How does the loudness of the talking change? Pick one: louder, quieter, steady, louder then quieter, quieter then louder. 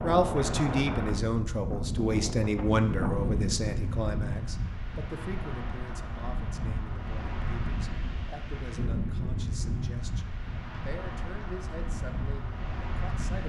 quieter.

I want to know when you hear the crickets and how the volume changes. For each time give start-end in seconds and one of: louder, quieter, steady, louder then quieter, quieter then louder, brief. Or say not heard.
not heard.